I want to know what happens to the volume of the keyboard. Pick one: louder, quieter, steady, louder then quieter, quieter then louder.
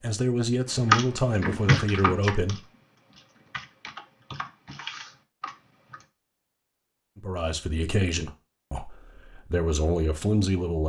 quieter then louder.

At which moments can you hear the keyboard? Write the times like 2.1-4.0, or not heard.
0.7-6.0.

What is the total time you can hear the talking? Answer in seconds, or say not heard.
6 s.